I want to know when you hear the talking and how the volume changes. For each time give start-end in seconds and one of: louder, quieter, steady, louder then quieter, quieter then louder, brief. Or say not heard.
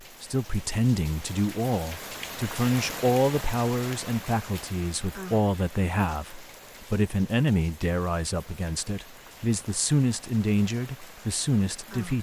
0.2-12.1 steady.